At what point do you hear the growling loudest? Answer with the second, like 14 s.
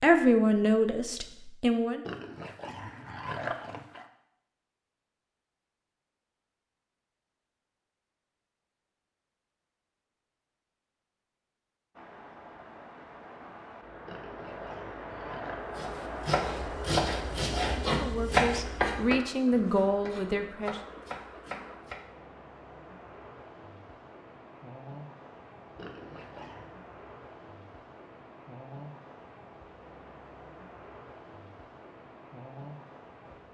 3 s.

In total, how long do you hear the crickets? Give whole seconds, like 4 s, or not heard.
not heard.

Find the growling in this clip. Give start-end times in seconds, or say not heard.
2.0-4.1, 14.1-15.6, 25.8-26.7.